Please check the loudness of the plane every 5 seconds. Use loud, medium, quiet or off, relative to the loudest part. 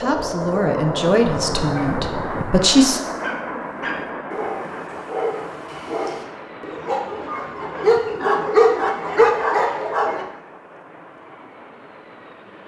loud, medium, quiet.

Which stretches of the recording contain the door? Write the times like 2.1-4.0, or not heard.
not heard.